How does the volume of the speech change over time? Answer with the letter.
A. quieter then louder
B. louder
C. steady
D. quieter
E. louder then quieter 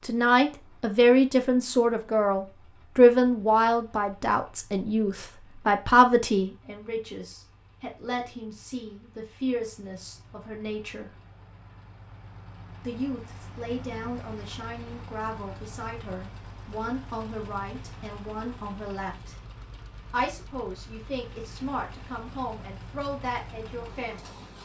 D.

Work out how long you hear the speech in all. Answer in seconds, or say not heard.
22 s.